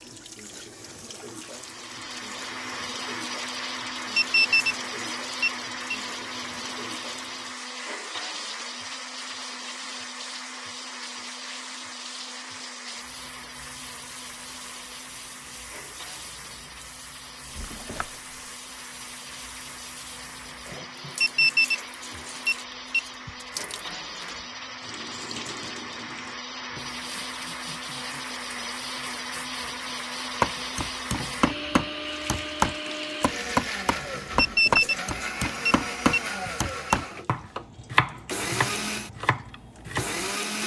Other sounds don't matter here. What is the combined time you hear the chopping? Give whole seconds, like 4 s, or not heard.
10 s.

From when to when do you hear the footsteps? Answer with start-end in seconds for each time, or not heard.
not heard.